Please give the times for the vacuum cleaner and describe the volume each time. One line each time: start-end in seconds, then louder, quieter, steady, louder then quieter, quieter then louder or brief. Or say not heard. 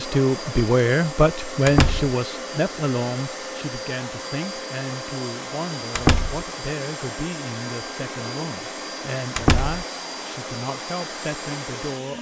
0.0-12.1 steady.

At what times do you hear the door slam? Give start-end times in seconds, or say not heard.
1.6-2.1, 6.0-6.5, 9.3-9.8.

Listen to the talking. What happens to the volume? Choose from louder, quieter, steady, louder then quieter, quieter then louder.
quieter.